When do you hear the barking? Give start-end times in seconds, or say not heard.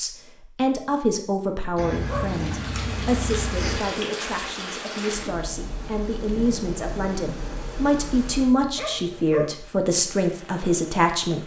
1.8-3.8, 8.8-9.6.